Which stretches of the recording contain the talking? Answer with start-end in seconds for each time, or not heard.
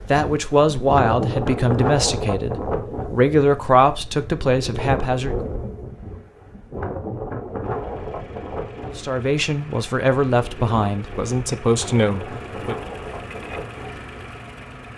0.1-5.3, 8.8-12.8.